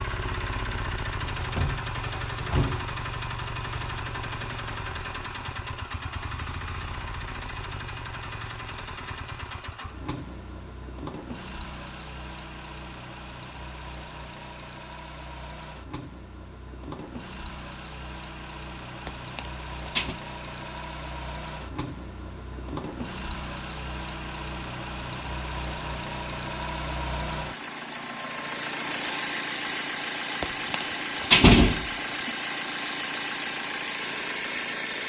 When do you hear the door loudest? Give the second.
31 s.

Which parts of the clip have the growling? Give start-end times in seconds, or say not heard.
not heard.